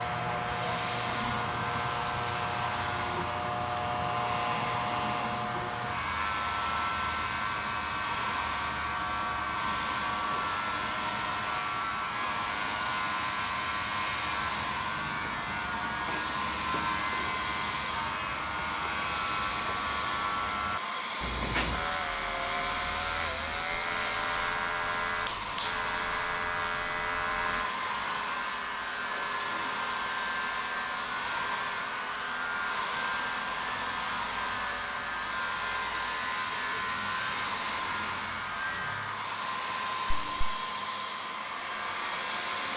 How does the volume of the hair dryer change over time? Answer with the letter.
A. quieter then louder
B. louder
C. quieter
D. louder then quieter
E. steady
E.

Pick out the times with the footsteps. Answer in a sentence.
The footsteps can't be heard in this clip.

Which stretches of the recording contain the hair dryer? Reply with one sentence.
The hair dryer can be heard from 0.0 to 42.7 s.